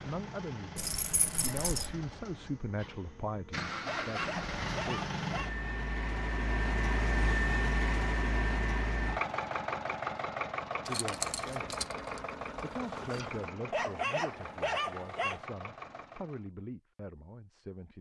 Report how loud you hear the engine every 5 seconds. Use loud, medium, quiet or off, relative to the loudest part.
medium, loud, medium, quiet.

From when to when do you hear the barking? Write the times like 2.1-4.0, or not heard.
3.9-5.5, 13.7-15.4.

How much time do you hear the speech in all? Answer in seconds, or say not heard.
11 s.